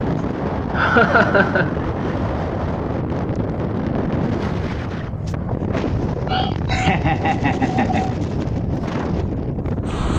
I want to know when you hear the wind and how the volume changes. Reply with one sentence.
The wind can be heard from 0.0 to 10.1 s, at a steady volume.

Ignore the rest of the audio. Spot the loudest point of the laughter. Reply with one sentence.
The volume of the laughter peaks at 1 second.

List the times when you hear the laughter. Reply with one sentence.
You can hear the laughter from 0.7 to 1.9 s and from 6.3 to 8.2 s.